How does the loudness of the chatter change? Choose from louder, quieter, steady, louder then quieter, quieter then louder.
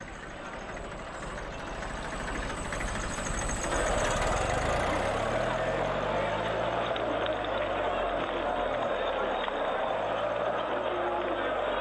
louder.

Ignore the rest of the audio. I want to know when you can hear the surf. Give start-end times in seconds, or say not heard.
not heard.